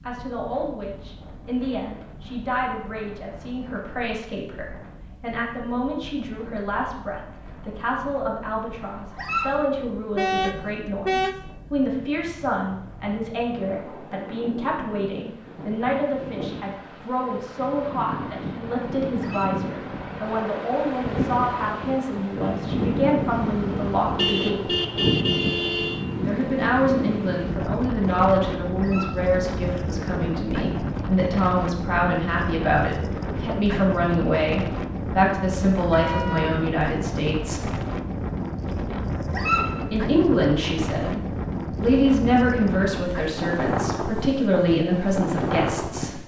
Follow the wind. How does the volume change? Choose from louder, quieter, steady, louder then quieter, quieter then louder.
louder.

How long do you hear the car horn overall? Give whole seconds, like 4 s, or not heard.
5 s.